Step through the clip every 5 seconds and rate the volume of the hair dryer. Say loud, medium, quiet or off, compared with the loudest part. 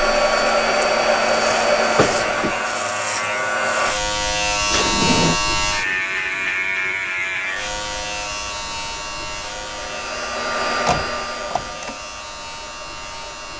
loud, quiet, medium.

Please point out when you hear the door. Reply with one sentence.
You can hear the door from 1.9 to 2.5 s, from 4.7 to 5.4 s and from 10.8 to 11.9 s.